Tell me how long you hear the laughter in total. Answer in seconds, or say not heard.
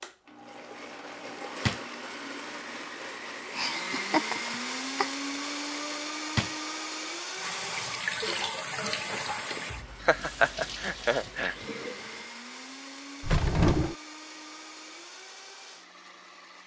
3 s.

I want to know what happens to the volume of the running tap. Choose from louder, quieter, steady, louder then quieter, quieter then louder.
quieter.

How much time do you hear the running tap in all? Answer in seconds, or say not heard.
5 s.